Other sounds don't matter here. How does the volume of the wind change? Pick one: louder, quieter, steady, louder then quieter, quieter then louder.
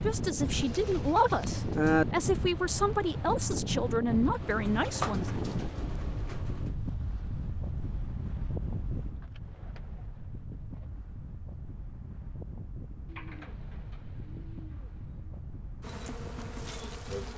quieter.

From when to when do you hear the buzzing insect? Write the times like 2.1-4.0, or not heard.
15.8-17.3.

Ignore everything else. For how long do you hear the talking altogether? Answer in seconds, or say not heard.
5 s.